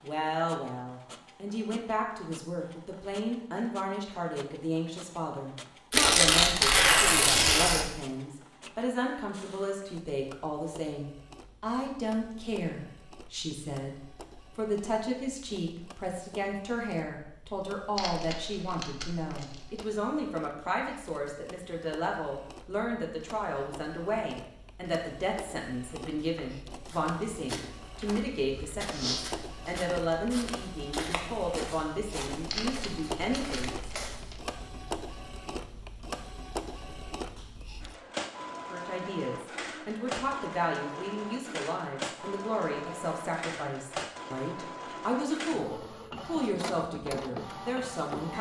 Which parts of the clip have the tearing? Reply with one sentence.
The tearing can be heard from 5.9 to 7.9 s, from 17.9 to 19.9 s and from 32.5 to 34.4 s.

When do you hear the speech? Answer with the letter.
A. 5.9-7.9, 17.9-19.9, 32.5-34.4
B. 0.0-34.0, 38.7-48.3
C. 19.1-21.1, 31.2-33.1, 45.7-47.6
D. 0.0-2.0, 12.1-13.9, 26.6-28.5
B.